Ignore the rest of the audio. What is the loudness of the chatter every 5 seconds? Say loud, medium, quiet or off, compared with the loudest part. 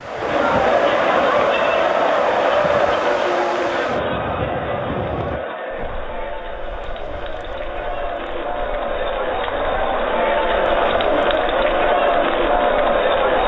loud, medium, loud.